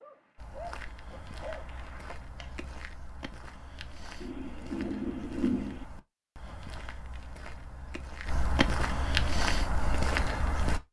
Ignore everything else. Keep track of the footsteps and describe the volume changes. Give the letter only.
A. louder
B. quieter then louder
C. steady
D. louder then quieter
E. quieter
A.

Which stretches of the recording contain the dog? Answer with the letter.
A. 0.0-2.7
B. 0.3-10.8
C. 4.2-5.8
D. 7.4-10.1
A.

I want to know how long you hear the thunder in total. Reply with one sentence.
The thunder can be heard for 2 seconds in total.